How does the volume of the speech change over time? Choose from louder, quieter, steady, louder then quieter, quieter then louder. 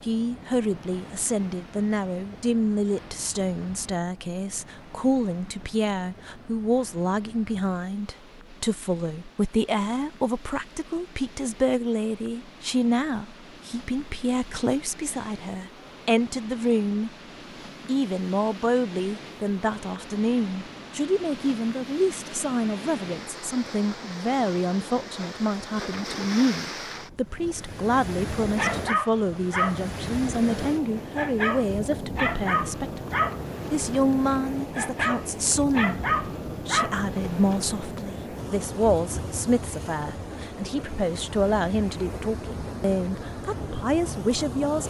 steady.